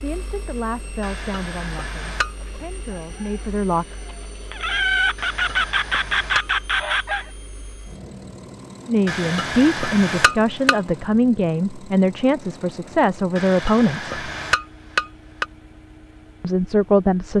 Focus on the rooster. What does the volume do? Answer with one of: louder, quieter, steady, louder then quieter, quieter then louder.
louder.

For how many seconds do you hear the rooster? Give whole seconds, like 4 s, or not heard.
5 s.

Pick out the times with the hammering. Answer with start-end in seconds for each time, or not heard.
1.0-2.4, 5.2-6.5, 9.1-10.8, 13.3-15.4.